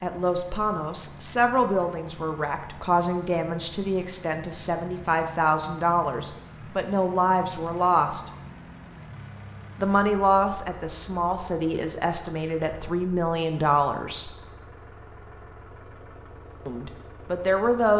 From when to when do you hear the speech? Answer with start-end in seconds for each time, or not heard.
0.0-8.2, 9.8-14.3, 16.6-17.9.